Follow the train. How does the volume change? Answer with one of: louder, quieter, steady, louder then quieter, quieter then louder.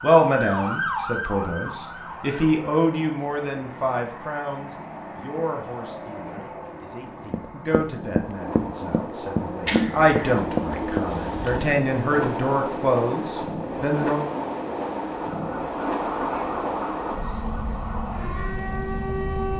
louder.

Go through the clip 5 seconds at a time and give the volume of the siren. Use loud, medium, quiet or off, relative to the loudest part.
loud, off, off, loud.